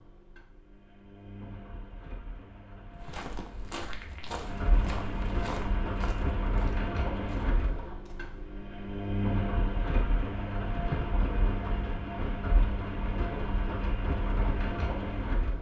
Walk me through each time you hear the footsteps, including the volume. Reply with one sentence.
The footsteps can be heard from 3.0 to 8.3 s, getting quieter.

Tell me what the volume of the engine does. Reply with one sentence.
The loudness of the engine goes up.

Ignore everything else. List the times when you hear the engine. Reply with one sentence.
You can hear the engine from 0.0 to 15.5 s.